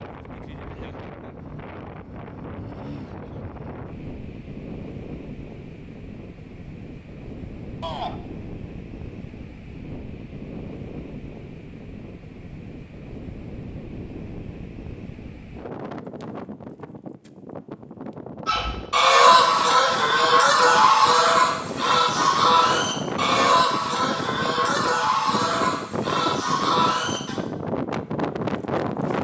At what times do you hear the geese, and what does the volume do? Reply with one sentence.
The geese can be heard from 18.4 to 27.4 s, getting quieter.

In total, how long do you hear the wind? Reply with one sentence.
The wind can be heard for 29 seconds in total.